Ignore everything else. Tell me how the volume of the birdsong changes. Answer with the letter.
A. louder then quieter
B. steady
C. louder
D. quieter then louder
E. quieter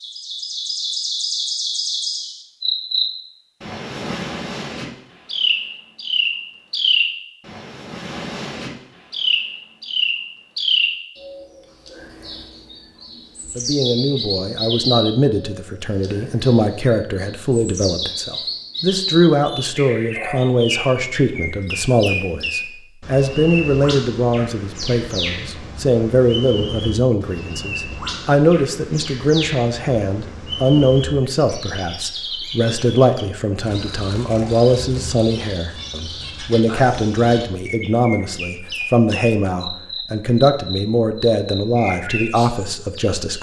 E.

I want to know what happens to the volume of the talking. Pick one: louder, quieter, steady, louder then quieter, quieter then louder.
steady.